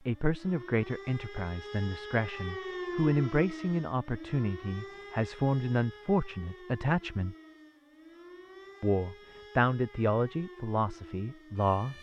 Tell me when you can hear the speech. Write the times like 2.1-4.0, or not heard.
0.1-7.3, 8.8-11.9.